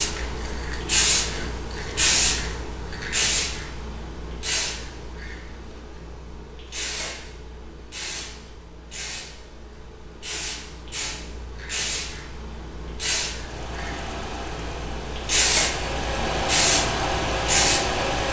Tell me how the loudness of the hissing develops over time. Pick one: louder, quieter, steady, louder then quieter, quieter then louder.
quieter then louder.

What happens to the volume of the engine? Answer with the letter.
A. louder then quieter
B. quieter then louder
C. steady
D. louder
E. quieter
D.